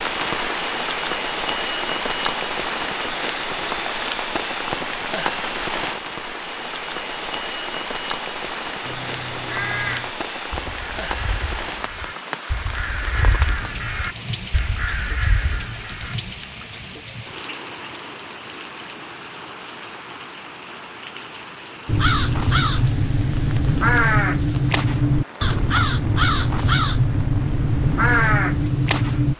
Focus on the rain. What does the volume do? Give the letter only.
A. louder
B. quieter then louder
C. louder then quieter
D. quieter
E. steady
D.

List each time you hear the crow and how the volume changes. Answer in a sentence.
The crow can be heard from 8.8 to 16.1 s, getting quieter then louder; and from 21.9 to 29.3 s, at a steady volume.